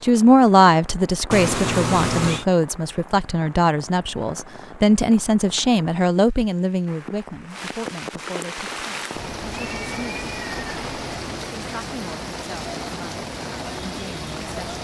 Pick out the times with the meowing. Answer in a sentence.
You can hear the meowing from 1.3 to 2.5 s and from 9.1 to 11.2 s.